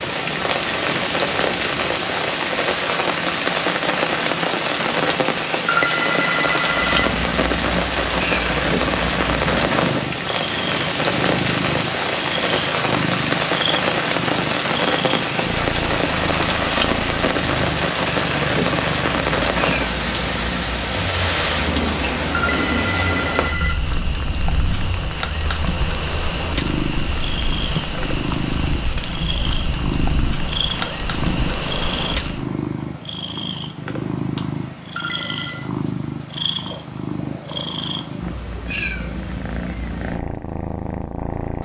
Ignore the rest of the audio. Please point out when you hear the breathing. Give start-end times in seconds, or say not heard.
not heard.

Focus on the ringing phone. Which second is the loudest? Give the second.
6 s.